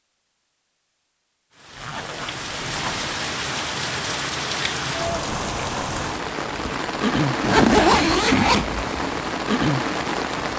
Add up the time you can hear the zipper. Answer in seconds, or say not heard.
3 s.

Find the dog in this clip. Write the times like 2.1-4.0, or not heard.
not heard.